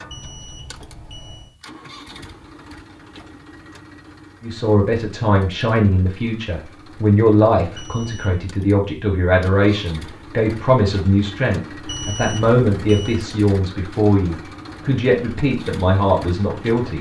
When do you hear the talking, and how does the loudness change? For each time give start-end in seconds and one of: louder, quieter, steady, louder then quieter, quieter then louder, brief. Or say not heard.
4.4-16.9 steady.